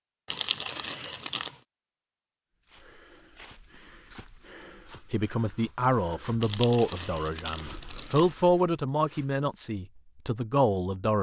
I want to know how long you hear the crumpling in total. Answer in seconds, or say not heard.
3 s.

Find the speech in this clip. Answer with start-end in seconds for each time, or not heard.
5.0-11.1.